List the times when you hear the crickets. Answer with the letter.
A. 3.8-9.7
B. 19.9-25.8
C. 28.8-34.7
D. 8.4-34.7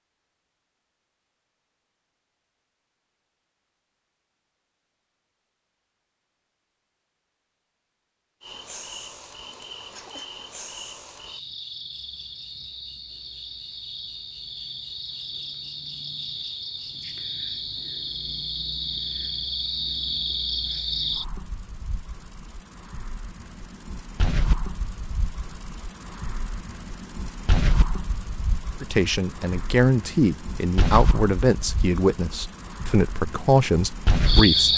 D.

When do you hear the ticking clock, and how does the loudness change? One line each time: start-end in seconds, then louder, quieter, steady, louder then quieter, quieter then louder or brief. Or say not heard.
not heard.